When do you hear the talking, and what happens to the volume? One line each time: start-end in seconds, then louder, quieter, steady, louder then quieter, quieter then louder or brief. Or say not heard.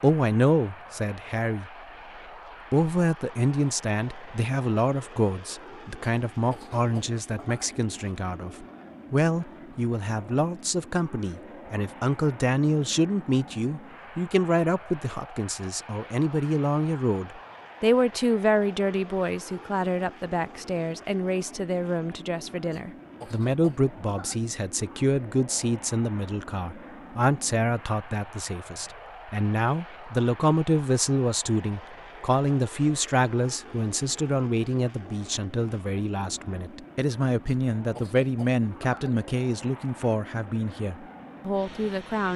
0.0-1.7 brief
2.7-42.3 steady.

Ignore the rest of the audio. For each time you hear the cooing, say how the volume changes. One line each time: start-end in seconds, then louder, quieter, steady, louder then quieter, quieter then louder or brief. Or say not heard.
not heard.